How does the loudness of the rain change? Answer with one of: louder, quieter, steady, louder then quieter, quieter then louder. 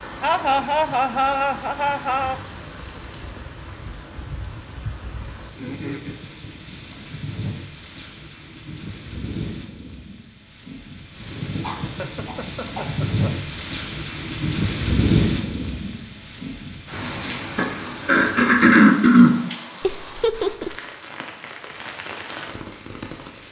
louder then quieter.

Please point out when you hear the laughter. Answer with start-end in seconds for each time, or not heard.
0.2-2.4, 11.8-13.4, 19.8-20.8.